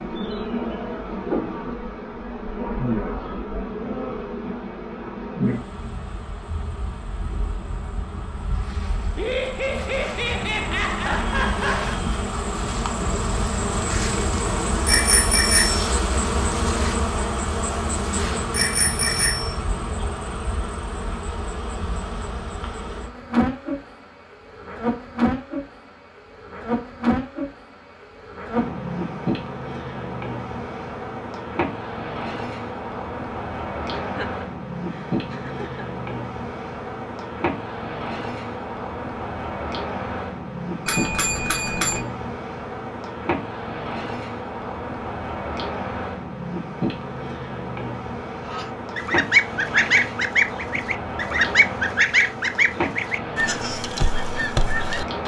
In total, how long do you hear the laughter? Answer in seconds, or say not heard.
5 s.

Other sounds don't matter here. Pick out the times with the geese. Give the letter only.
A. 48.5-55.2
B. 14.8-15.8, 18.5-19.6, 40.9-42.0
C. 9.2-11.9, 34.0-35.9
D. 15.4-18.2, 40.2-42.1
A.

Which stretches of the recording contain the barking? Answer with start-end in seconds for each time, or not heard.
not heard.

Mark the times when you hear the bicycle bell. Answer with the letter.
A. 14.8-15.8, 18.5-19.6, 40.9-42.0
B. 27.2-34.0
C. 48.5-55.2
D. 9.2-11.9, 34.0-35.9
A.